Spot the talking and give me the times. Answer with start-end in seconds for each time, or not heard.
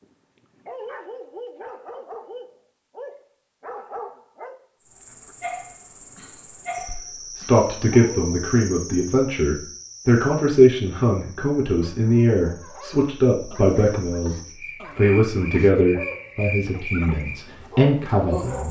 6.8-14.3, 14.9-18.6.